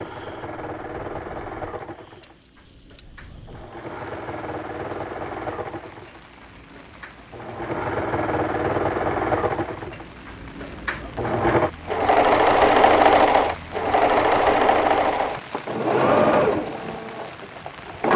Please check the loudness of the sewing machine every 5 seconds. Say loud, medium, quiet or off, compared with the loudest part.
quiet, medium, loud, loud.